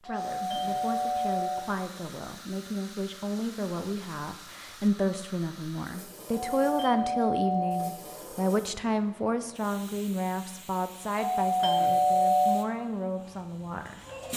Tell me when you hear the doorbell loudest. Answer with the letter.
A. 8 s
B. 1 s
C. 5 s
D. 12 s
D.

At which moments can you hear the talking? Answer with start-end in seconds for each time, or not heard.
0.0-14.3.